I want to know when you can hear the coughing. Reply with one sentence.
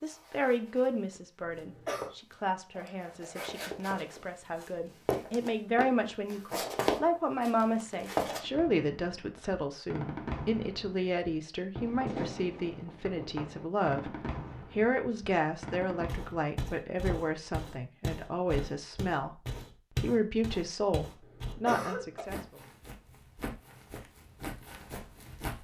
The coughing can be heard from 1.4 to 2.1 s and from 21.2 to 22.2 s.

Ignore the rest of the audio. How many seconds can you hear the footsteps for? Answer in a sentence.
You can hear the footsteps for 18 seconds altogether.